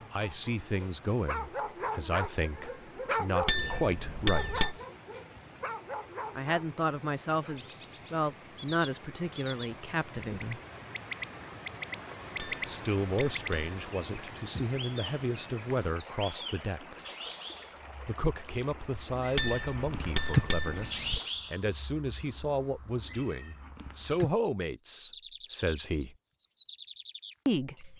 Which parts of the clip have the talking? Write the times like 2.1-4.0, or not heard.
0.1-4.6, 6.3-10.6, 12.7-16.9, 18.1-26.1, 27.4-27.9.